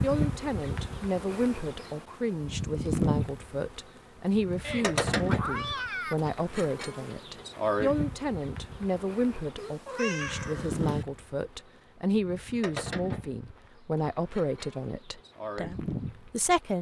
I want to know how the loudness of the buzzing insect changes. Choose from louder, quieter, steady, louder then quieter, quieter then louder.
quieter.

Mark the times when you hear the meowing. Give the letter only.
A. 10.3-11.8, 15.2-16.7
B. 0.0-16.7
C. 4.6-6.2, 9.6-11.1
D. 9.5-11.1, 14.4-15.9
C.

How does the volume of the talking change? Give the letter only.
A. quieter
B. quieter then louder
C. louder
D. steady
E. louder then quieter
D.